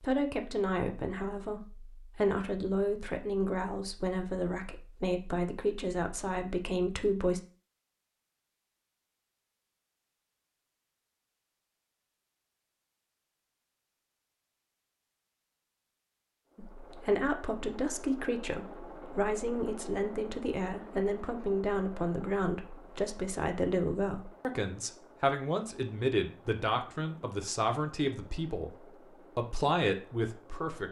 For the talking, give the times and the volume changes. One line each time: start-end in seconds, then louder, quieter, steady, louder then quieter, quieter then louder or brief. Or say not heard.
0.0-7.4 steady
16.6-30.8 steady.